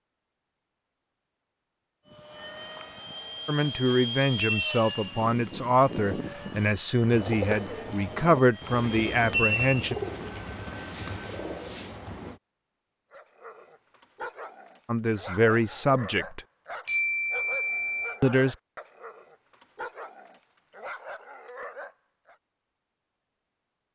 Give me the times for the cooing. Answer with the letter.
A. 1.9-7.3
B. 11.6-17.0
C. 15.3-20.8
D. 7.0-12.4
D.